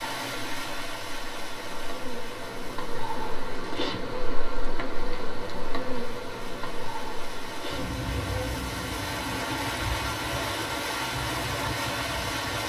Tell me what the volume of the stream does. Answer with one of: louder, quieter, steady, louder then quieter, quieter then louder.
quieter then louder.